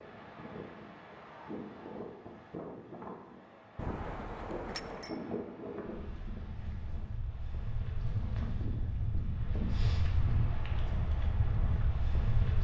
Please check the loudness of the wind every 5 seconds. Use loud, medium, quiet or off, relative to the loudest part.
medium, loud, loud.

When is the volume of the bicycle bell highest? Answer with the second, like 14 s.
4 s.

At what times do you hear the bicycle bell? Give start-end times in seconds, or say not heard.
3.8-5.2.